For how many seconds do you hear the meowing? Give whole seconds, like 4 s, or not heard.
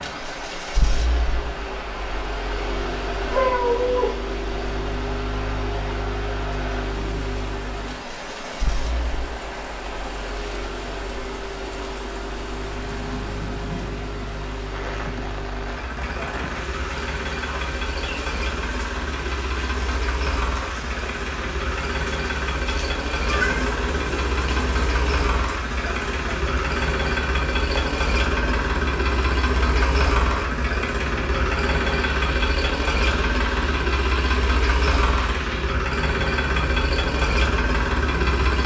3 s.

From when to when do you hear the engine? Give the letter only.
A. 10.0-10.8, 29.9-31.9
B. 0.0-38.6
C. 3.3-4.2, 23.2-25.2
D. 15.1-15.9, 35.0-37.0
B.